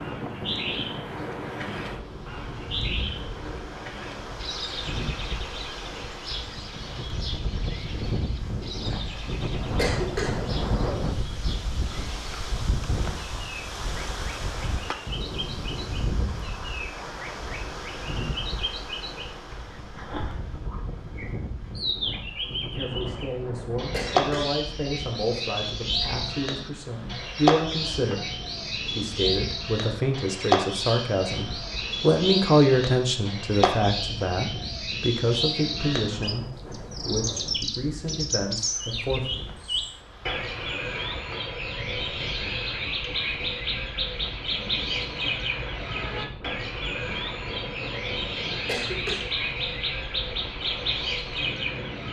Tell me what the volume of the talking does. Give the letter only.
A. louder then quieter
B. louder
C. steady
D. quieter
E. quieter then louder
A.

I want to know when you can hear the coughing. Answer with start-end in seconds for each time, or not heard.
9.8-10.4, 23.9-24.6, 48.6-49.2.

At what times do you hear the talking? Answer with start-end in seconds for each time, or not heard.
22.4-39.4.